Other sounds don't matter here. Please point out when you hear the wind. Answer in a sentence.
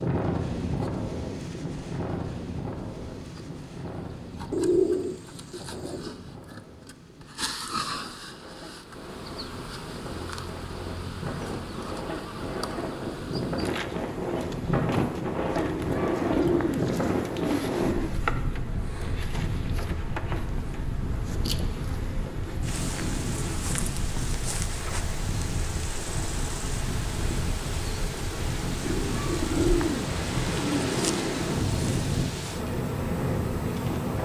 You can hear the wind from 0.0 to 34.2 s.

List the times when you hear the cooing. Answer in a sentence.
The cooing can be heard from 4.5 to 6.2 s, from 15.6 to 18.1 s and from 28.8 to 31.5 s.